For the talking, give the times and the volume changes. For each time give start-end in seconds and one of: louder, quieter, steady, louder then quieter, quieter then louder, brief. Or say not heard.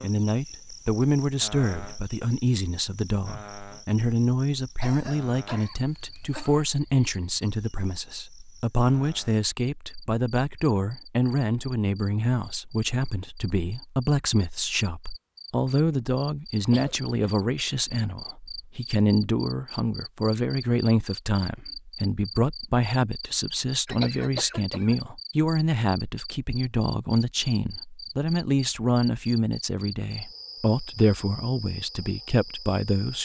0.0-33.2 steady.